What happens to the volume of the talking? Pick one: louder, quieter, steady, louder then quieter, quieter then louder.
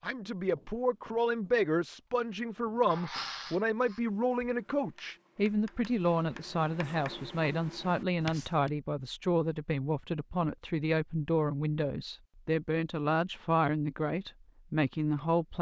steady.